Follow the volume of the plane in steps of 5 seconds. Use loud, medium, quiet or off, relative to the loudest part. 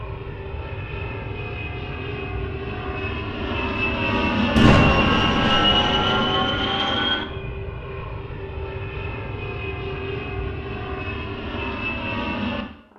loud, loud, medium.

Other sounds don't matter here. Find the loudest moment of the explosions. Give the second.
5 s.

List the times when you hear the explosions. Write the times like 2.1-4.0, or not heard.
4.5-6.7.